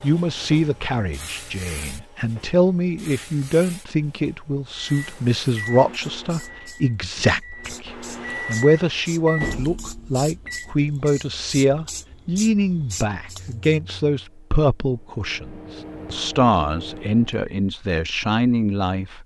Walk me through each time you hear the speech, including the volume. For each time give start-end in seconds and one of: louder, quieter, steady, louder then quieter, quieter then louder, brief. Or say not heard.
0.0-19.2 steady.